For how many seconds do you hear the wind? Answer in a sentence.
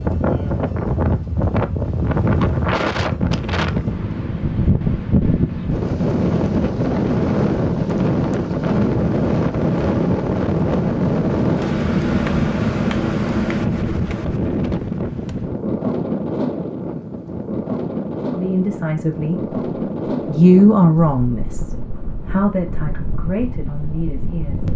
You can hear the wind for 25 seconds altogether.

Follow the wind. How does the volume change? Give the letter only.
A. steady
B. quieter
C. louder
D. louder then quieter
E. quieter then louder
B.